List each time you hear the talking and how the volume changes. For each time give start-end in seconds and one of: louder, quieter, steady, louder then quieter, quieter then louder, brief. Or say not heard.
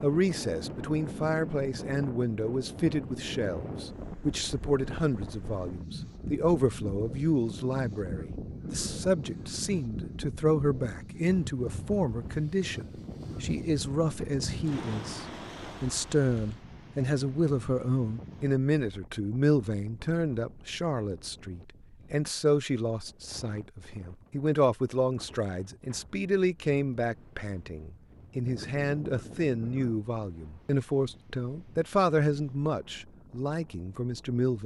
0.0-34.6 steady.